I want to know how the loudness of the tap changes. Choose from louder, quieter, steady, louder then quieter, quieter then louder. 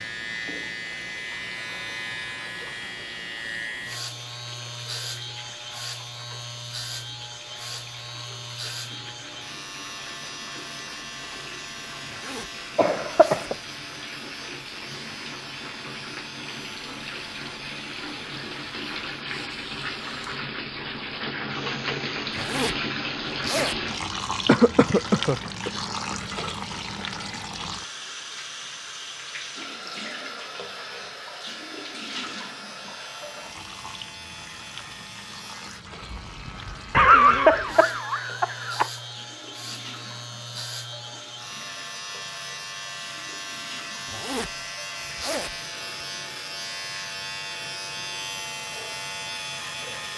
louder then quieter.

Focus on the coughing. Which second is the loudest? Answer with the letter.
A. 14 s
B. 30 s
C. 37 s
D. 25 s
C.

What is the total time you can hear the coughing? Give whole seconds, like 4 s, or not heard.
4 s.